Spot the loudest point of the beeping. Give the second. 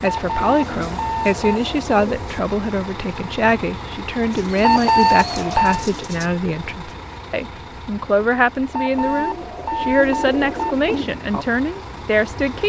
5 s.